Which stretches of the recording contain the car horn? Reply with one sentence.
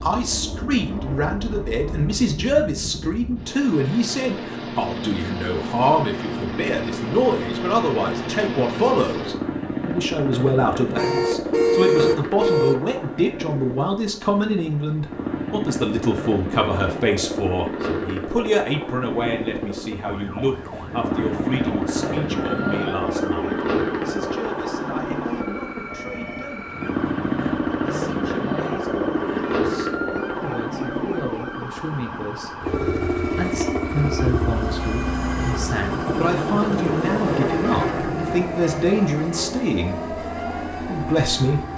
The car horn can be heard from 10.9 to 12.8 s and from 34.6 to 35.8 s.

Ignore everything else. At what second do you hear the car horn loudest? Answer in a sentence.
The loudest moment of the car horn is at 12 seconds.